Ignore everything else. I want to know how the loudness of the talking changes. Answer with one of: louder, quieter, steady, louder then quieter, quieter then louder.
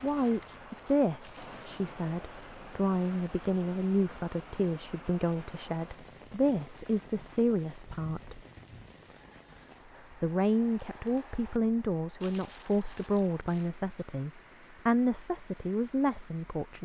steady.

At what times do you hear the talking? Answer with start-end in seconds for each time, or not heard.
0.0-8.4, 10.2-16.8.